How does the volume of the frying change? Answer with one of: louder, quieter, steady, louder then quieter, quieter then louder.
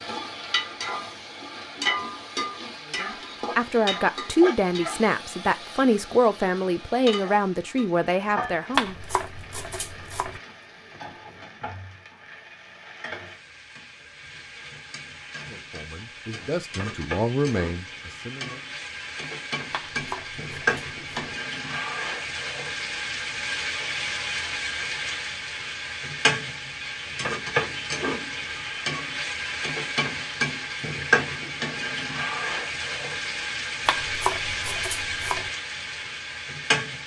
quieter then louder.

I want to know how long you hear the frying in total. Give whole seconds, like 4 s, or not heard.
37 s.